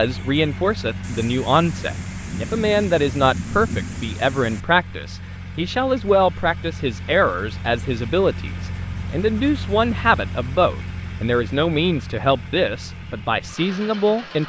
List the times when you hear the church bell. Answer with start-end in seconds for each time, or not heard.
not heard.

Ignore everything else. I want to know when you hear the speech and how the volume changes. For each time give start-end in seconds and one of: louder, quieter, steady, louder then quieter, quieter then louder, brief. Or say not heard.
0.0-14.4 steady.